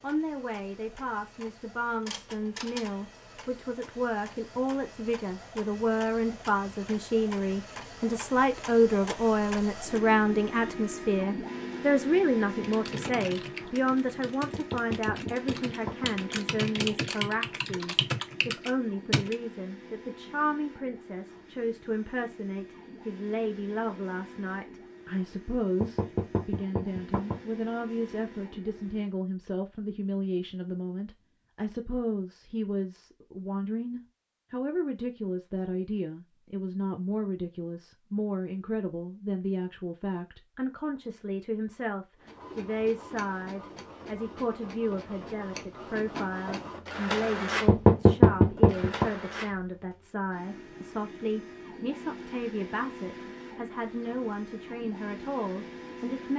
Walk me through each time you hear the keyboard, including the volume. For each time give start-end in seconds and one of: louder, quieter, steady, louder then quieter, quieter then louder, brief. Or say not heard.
12.6-19.4 louder.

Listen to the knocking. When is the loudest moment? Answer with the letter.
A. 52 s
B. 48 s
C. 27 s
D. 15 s
B.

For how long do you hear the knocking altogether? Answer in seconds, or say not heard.
5 s.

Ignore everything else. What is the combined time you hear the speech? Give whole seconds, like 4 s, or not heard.
56 s.